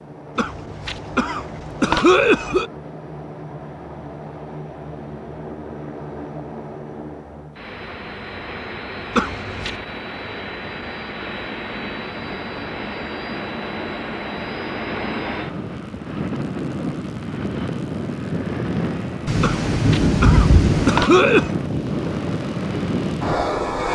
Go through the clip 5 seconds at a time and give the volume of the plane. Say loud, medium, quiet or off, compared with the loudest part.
quiet, medium, medium, loud, loud.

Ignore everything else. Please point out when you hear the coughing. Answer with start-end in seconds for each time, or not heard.
0.3-2.6, 9.2-9.8, 19.4-21.5.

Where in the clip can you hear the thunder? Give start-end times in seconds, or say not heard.
19.2-21.0.